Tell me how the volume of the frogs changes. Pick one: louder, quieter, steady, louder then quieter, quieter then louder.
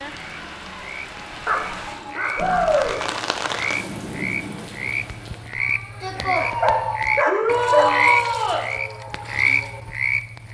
louder.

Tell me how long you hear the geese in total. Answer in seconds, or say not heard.
not heard.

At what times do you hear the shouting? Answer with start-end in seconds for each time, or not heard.
2.4-3.0, 7.2-8.7.